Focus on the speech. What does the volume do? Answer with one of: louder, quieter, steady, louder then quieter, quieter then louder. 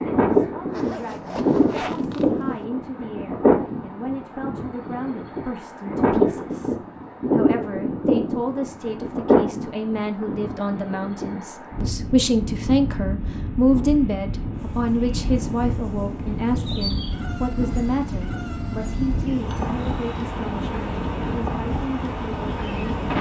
louder then quieter.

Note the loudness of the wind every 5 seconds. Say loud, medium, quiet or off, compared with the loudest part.
loud, loud, medium, medium, medium.